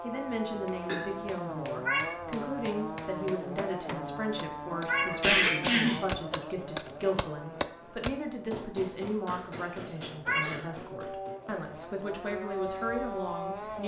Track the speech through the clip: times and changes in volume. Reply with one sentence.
You can hear the speech from 0.0 to 13.8 s, at a steady volume.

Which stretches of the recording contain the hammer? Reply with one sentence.
The hammer can be heard from 0.7 to 11.6 s.